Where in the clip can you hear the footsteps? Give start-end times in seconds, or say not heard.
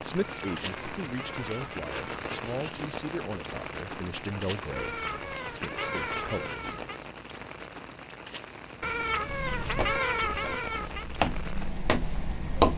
9.2-12.7.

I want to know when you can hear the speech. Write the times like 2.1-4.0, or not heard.
0.0-6.8.